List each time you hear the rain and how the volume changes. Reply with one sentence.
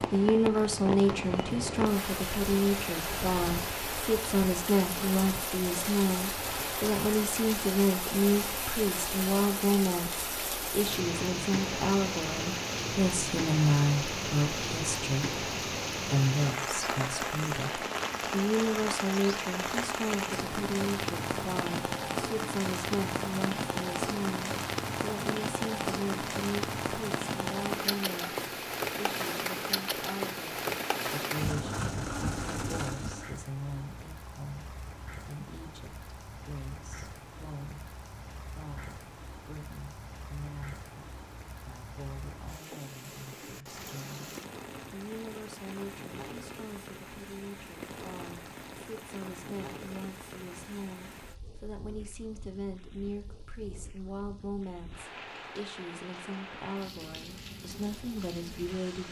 The rain can be heard from 0.0 to 59.0 s, getting quieter.